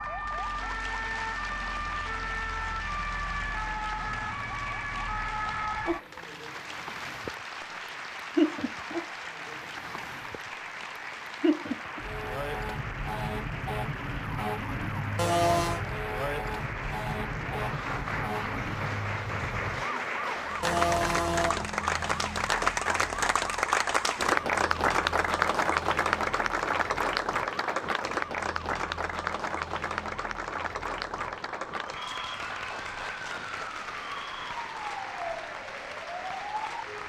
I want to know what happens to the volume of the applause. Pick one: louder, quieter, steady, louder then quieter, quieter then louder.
louder then quieter.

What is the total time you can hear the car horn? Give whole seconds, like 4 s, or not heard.
2 s.